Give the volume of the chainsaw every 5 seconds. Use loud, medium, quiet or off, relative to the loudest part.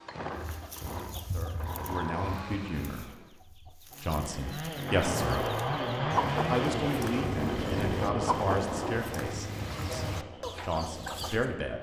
medium, loud, quiet.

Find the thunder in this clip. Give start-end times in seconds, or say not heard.
4.8-9.4.